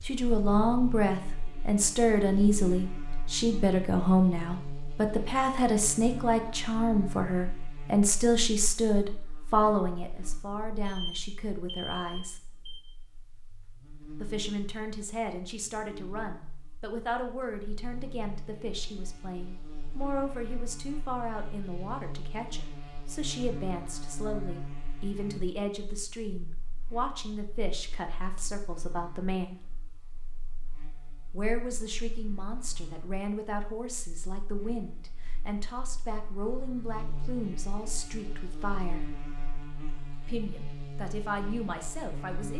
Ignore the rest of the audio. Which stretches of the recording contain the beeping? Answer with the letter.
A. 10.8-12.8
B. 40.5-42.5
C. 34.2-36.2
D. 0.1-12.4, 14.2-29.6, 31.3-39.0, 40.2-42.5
A.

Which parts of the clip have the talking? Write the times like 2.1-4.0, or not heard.
0.1-12.4, 14.2-29.6, 31.3-39.0, 40.2-42.5.